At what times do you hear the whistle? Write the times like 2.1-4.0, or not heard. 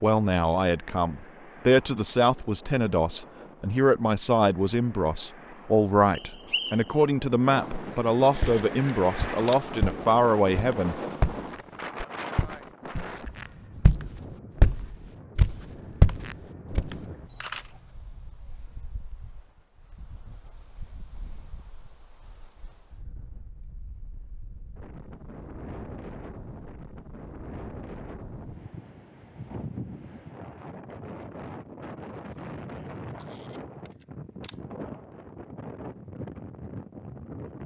6.1-6.9.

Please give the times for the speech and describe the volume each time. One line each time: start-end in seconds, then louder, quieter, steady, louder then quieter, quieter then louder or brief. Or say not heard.
0.0-10.9 steady.